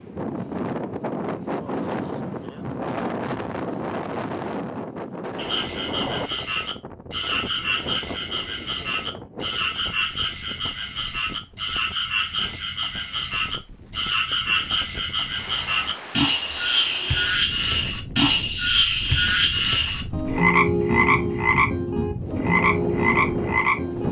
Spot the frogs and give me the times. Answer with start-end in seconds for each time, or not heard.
5.3-24.0.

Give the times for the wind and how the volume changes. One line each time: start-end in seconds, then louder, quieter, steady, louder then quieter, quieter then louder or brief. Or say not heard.
0.0-24.0 quieter then louder.